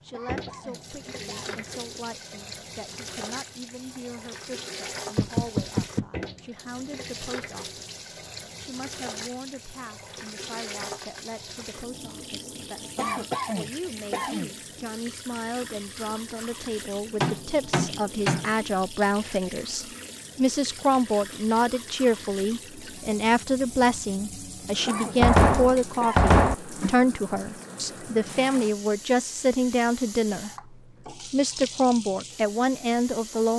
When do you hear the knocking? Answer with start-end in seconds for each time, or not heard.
5.2-6.0, 17.2-18.5, 25.2-26.6.